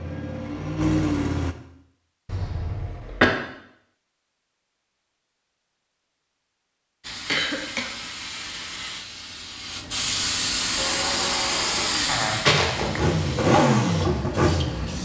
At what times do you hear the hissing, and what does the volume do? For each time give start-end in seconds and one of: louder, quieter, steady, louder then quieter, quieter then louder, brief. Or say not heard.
7.0-14.9 louder then quieter.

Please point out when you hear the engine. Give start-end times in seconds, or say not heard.
0.0-1.6, 10.8-14.9.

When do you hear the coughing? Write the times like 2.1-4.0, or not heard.
2.2-3.3, 7.2-7.9, 12.1-13.2.